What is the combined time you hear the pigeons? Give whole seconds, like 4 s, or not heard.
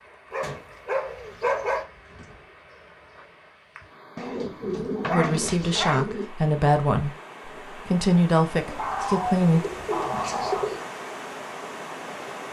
6 s.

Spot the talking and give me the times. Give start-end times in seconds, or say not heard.
5.1-9.7.